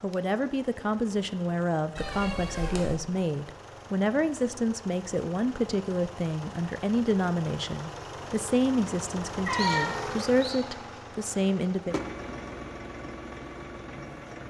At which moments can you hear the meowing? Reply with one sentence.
The meowing can be heard from 1.9 to 3.0 s and from 9.4 to 10.6 s.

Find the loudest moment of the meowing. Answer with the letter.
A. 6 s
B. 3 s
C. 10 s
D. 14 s
C.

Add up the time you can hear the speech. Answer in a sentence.
You can hear the speech for 12 seconds altogether.